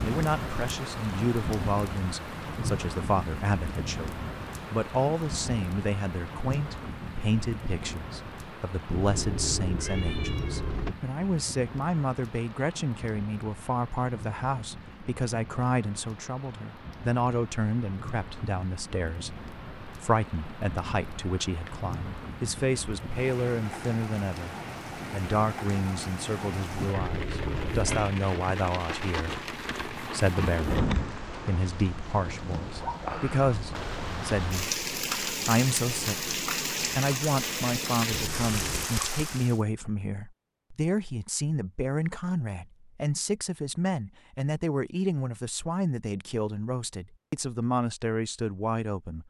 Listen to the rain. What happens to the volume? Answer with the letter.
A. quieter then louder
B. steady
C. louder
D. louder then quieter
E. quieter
A.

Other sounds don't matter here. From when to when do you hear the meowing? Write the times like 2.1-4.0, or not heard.
8.9-10.9, 26.9-28.1, 38.1-38.9.